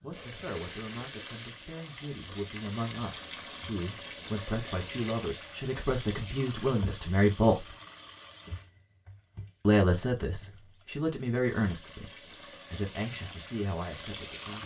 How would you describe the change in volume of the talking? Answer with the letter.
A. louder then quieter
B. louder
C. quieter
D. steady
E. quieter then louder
A.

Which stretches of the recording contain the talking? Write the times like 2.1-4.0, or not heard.
0.0-7.7, 9.7-14.6.